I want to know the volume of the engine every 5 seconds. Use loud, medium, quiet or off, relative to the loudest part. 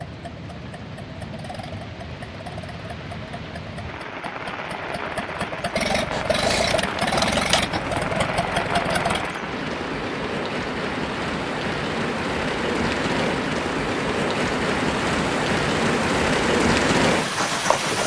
quiet, loud, off, off.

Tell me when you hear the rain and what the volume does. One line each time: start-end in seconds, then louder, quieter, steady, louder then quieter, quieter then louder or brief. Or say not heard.
0.0-18.0 louder.